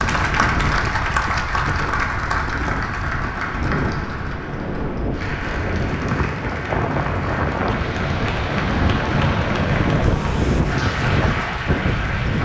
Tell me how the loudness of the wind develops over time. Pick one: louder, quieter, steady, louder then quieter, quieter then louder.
louder.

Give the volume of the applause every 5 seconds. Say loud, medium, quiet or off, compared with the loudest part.
loud, medium, loud.